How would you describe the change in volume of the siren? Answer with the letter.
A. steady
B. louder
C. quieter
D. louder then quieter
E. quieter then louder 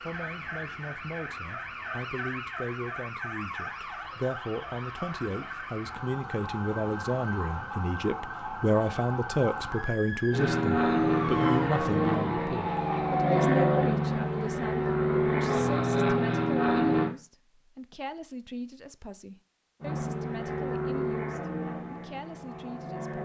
A.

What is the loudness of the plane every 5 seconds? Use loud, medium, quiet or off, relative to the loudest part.
off, off, loud, loud, medium.